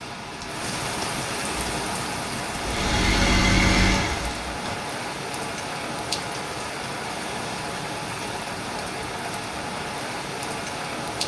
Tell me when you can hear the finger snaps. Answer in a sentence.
You can't hear the finger snaps here.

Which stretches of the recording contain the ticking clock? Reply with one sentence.
The ticking clock can't be heard in this clip.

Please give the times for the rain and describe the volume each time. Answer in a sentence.
The rain can be heard from 0.0 to 11.2 s, at a steady volume.